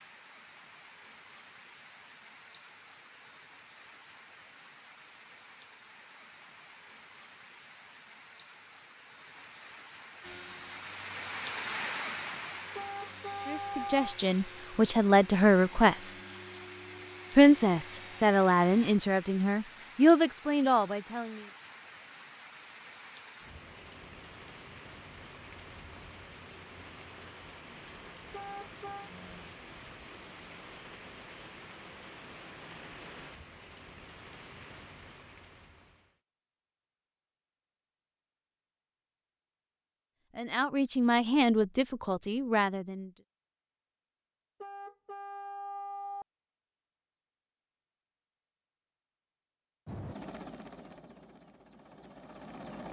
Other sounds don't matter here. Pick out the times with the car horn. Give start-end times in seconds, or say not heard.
12.8-14.2, 28.3-29.1, 44.6-46.2.